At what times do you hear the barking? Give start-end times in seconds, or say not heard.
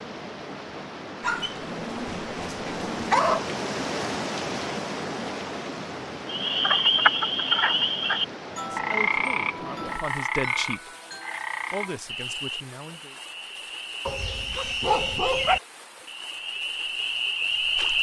1.2-3.5, 14.1-15.6.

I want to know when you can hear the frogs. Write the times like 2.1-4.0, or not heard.
6.2-17.9.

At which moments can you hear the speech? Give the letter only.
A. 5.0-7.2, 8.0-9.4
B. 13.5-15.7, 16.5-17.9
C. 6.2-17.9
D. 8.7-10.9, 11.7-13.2
D.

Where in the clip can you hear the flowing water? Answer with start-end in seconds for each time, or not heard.
0.0-17.9.